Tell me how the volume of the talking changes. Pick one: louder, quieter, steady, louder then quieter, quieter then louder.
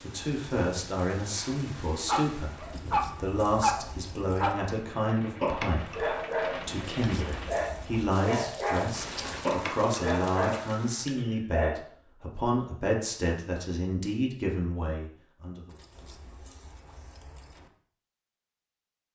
steady.